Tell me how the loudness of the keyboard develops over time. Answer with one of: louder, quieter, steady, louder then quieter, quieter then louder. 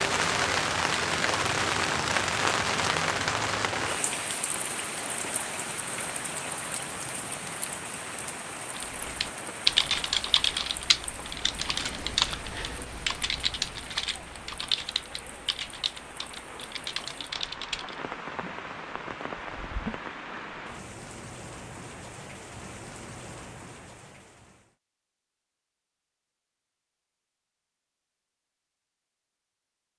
quieter.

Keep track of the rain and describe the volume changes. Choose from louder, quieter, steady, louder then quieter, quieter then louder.
quieter.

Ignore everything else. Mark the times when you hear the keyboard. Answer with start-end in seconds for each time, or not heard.
8.8-18.0.